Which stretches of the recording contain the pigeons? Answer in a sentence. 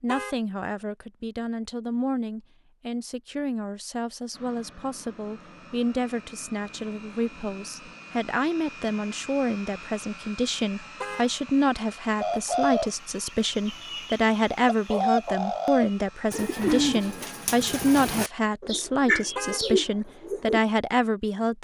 You can hear the pigeons from 12.2 to 20.6 s.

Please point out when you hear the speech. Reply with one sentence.
The speech can be heard from 0.0 to 21.5 s.